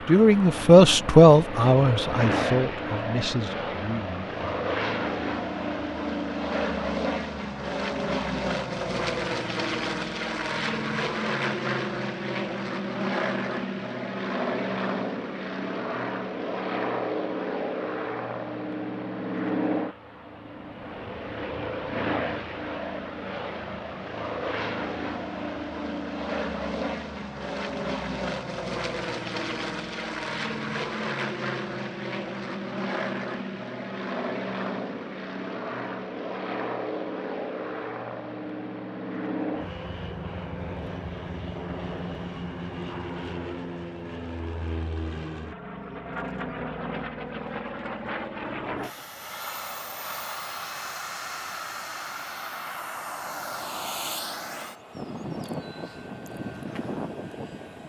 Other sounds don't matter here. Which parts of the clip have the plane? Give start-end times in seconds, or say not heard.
0.0-57.8.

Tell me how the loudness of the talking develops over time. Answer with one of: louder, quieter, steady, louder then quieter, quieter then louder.
quieter.